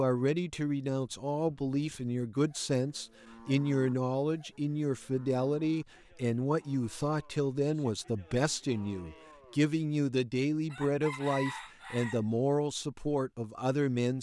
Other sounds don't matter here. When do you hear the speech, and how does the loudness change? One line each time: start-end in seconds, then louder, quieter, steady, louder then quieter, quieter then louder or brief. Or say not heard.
0.0-14.1 steady.